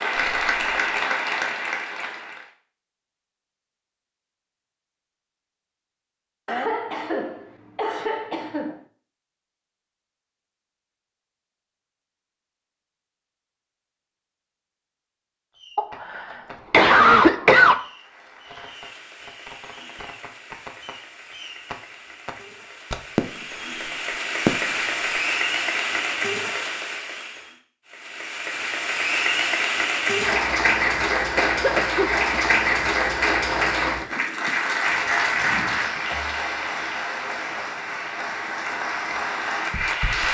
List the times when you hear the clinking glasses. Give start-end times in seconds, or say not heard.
not heard.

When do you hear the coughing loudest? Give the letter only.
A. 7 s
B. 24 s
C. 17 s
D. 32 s
C.